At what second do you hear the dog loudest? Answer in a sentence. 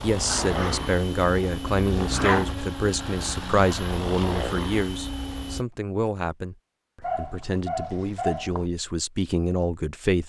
The volume of the dog peaks at 2 seconds.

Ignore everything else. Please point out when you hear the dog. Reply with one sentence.
You can hear the dog from 0.2 to 2.5 s and from 7.0 to 8.7 s.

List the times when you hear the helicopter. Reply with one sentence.
The helicopter can be heard from 0.0 to 5.7 s.